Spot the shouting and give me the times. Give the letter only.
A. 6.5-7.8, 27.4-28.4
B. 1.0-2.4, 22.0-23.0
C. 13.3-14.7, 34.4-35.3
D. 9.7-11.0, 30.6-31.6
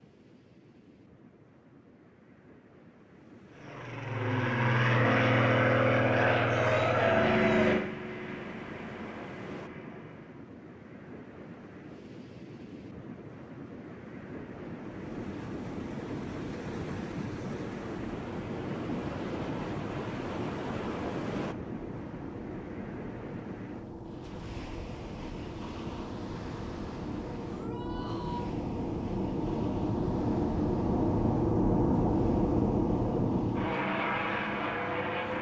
A.